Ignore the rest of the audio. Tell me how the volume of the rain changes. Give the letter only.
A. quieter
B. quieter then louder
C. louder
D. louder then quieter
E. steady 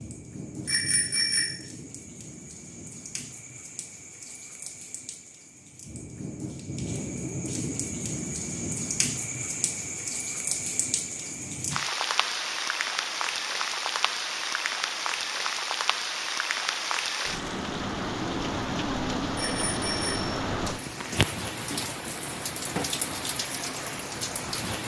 C.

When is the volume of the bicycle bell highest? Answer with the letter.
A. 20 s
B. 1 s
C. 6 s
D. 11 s
B.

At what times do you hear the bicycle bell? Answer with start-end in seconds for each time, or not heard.
0.7-1.6, 19.4-20.4.